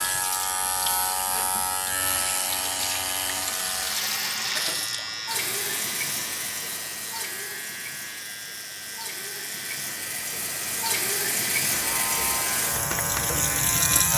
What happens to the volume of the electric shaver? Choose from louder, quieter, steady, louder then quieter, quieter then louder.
quieter then louder.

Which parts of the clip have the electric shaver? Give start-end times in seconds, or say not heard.
0.0-14.1.